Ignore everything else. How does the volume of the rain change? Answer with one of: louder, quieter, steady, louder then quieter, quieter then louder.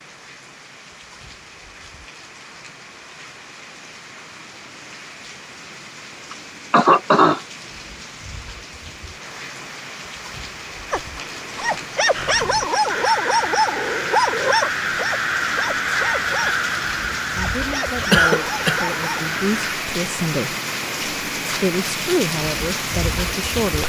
louder.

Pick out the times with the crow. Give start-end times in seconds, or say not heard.
12.1-19.8.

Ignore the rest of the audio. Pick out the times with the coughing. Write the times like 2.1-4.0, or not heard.
6.3-7.4, 18.1-18.9.